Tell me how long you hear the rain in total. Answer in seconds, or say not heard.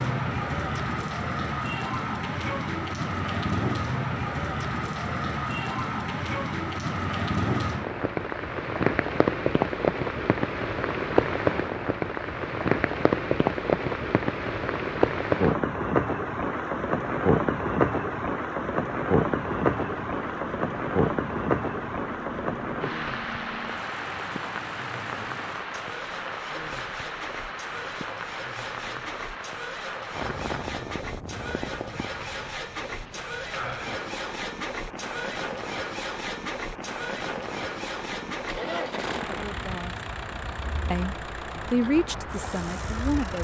43 s.